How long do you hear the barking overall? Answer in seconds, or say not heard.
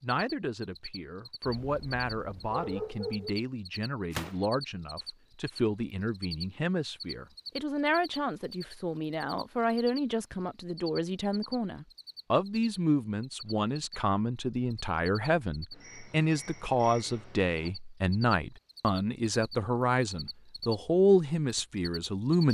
2 s.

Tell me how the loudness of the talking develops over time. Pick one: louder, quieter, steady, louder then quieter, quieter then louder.
louder.